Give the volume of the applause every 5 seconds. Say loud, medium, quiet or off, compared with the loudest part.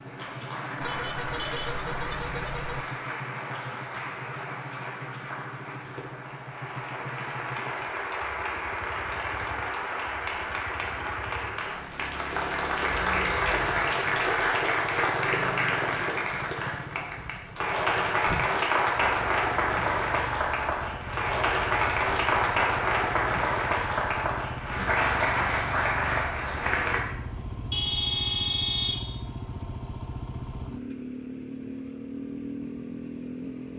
medium, medium, loud, loud, loud, loud, off.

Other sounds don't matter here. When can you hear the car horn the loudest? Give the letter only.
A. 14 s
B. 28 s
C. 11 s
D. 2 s
B.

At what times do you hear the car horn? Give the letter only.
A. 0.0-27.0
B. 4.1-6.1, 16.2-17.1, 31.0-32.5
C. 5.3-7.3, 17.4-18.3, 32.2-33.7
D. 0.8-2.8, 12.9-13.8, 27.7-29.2
D.